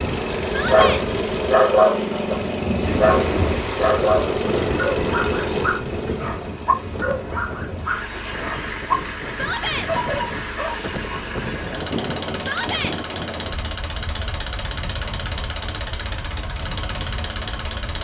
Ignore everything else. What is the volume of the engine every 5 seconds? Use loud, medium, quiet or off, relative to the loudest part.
loud, medium, medium, medium.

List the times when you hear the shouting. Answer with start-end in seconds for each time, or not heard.
0.5-1.1, 9.3-9.9, 12.3-12.9.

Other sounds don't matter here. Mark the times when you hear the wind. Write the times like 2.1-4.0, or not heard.
2.8-17.9.